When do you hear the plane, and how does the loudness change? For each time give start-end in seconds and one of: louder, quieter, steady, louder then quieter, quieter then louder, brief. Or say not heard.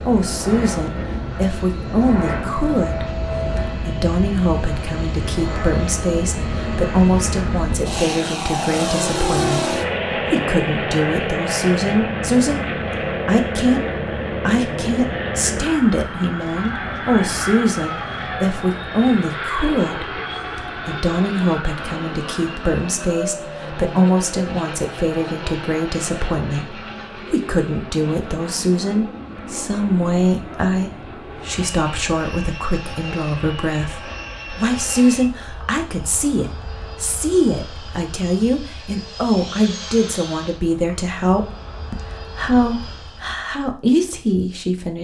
0.0-43.4 quieter.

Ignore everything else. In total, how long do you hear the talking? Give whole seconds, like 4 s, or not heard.
44 s.